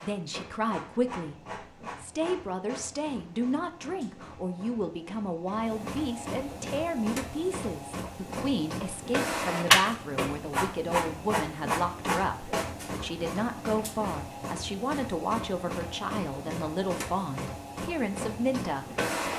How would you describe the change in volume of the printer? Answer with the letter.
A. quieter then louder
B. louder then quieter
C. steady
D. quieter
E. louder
B.